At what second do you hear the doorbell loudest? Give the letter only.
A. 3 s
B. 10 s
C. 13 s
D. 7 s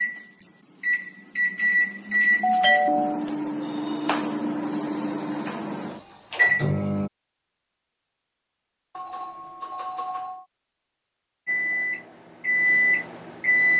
A.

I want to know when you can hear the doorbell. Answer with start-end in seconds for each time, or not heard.
2.4-3.2, 8.9-10.4.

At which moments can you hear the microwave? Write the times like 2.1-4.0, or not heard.
0.0-7.1, 11.4-13.7.